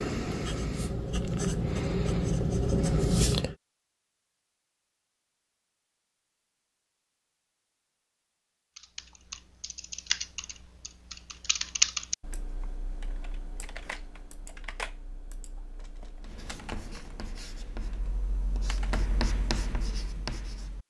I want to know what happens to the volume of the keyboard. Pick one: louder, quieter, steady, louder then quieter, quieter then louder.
louder then quieter.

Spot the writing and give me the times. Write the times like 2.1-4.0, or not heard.
0.0-3.5, 16.2-20.8.